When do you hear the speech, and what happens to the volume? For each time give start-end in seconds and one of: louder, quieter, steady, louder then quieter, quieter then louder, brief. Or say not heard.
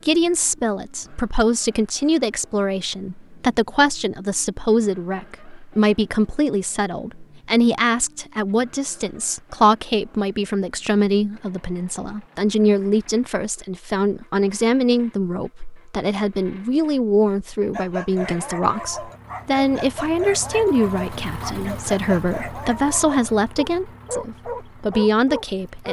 0.1-25.8 steady.